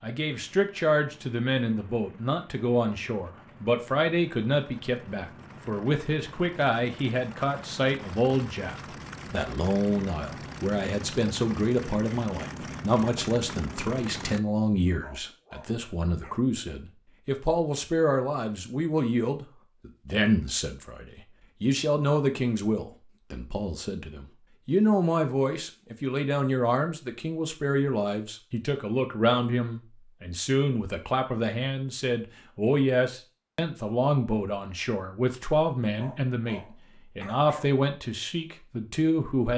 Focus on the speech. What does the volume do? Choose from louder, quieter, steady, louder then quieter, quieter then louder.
steady.